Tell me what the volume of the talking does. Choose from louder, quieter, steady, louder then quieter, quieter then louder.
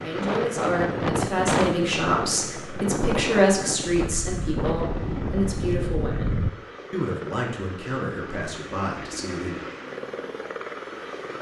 quieter.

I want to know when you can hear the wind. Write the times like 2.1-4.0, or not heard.
0.0-6.5.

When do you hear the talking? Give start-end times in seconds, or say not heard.
0.0-9.6.